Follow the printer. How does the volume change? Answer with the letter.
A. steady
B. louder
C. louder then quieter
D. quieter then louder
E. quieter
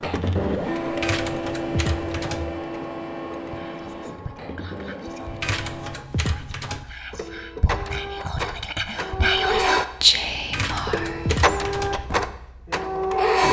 D.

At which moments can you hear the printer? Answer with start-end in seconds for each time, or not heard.
0.0-13.4.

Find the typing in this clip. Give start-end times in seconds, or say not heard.
1.0-2.5, 5.4-6.8, 10.5-11.9.